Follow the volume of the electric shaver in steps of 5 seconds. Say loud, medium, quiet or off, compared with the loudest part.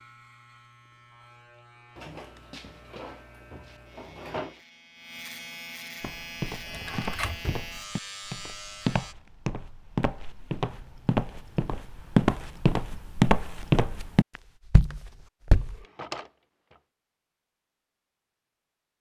quiet, loud, off, off.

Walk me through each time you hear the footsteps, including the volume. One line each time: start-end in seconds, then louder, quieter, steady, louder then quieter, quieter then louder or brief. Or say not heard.
6.0-15.8 louder.